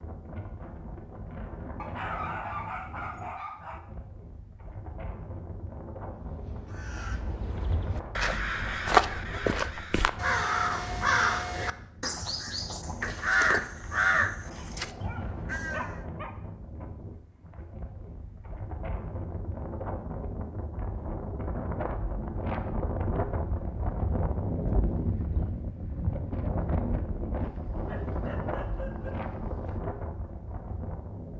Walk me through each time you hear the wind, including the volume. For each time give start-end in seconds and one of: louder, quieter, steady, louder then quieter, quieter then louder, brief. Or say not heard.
0.0-31.3 louder.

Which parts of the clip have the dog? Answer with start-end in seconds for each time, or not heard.
1.8-3.8, 14.7-16.4, 27.4-29.8.